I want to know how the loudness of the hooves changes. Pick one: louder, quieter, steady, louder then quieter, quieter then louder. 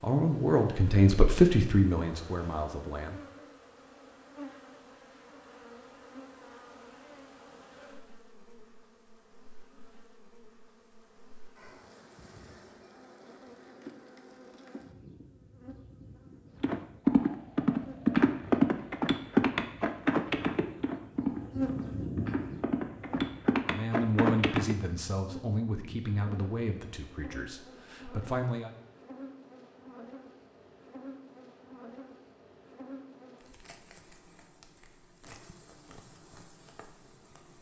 quieter then louder.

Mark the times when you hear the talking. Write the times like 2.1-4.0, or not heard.
0.0-3.1, 23.6-28.7.